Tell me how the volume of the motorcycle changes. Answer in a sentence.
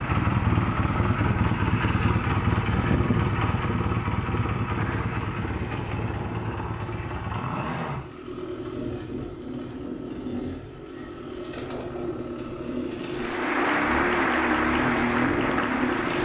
The loudness of the motorcycle goes down, then up.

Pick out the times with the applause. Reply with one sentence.
You can hear the applause from 13.1 to 16.2 s.